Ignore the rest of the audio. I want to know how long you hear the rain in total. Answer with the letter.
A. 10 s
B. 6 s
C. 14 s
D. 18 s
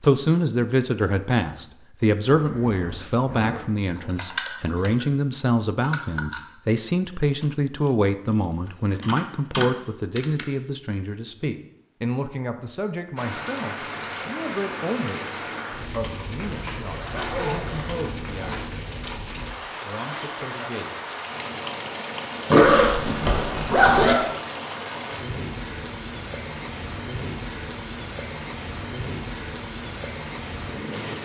D.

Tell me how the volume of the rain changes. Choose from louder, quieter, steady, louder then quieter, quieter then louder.
steady.